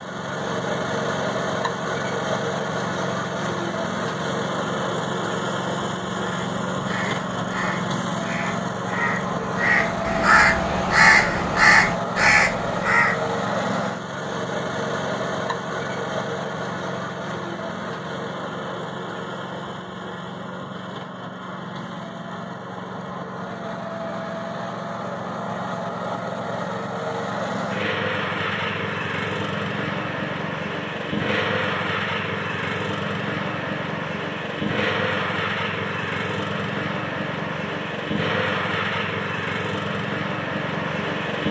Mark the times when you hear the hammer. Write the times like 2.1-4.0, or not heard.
not heard.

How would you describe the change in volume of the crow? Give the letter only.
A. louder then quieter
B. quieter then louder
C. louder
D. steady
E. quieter
C.